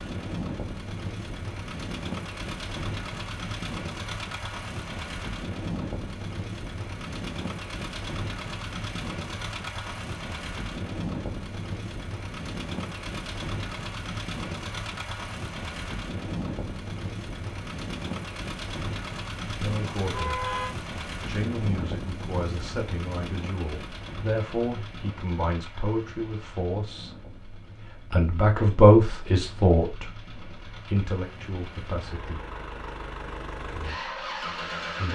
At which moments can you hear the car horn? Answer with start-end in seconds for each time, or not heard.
20.1-20.8.